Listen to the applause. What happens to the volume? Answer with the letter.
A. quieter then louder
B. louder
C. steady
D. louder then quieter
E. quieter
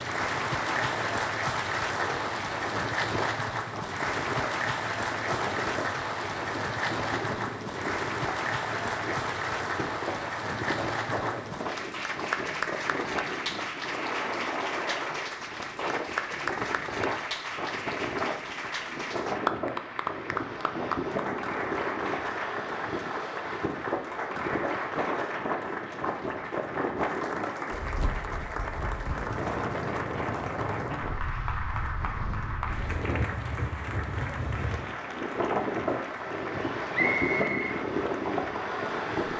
E.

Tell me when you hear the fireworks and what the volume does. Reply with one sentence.
The fireworks can't be heard in this clip.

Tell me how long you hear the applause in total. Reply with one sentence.
You can hear the applause for 39 seconds altogether.